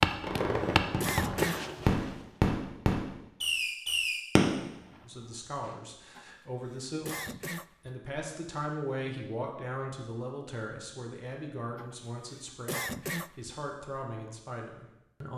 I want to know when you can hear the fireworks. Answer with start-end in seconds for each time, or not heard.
0.2-4.7.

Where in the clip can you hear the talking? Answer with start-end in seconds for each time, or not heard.
5.0-15.3.